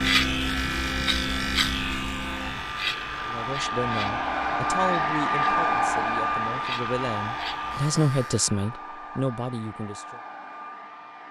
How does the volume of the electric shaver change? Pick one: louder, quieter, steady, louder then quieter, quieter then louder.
quieter then louder.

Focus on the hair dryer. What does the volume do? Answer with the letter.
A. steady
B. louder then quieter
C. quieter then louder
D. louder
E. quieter
B.